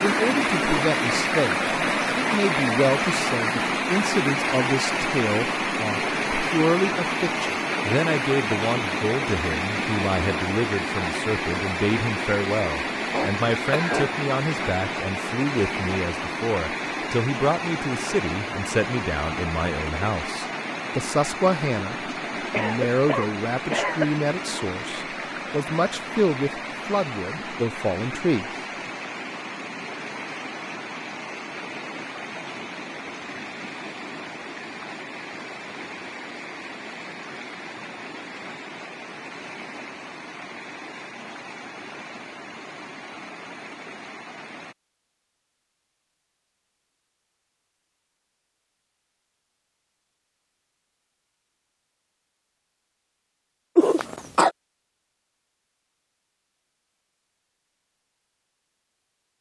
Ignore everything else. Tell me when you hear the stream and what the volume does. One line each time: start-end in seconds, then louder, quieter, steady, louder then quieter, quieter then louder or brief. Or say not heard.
0.0-44.8 quieter.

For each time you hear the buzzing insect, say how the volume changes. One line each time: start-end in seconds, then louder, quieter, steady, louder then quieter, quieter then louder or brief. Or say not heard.
not heard.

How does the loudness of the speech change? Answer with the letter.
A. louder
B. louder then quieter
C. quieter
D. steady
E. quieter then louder
D.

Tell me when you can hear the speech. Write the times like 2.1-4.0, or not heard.
0.0-28.4.